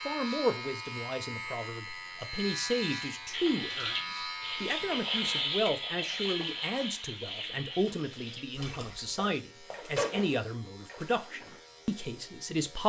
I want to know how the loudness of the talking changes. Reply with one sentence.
The loudness of the talking stays about the same.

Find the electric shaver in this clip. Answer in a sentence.
The electric shaver can be heard from 0.0 to 12.8 s.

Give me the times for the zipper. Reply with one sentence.
You can hear the zipper from 9.2 to 10.2 s.